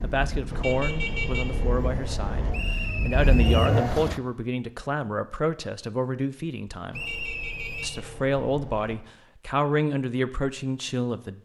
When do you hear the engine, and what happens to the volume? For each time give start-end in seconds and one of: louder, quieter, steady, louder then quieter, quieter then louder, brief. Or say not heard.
0.0-4.2 louder.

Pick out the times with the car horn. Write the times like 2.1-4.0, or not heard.
0.5-2.5, 6.9-8.9.